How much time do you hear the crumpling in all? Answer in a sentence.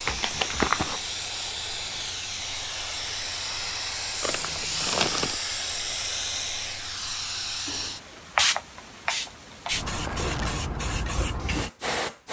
The crumpling can be heard for 3 seconds in total.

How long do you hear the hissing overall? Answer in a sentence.
The hissing can be heard for 12 seconds in total.